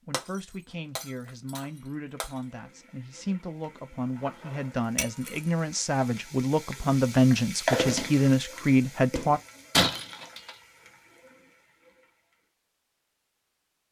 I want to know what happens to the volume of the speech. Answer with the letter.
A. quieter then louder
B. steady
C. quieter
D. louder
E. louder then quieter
D.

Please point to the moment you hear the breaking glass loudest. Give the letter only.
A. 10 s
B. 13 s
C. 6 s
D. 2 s
A.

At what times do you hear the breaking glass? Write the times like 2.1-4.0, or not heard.
0.1-2.3, 5.0-5.5, 9.7-10.6.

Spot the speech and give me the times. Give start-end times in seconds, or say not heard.
0.1-9.4.